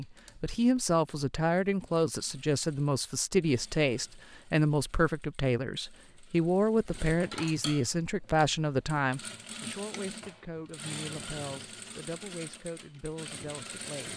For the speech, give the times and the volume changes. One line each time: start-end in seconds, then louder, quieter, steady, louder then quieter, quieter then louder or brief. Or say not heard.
0.0-14.1 quieter.